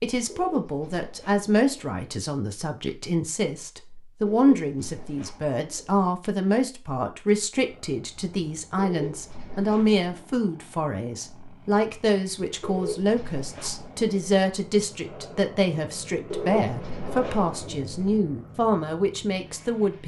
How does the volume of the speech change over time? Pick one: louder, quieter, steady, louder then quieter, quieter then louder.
steady.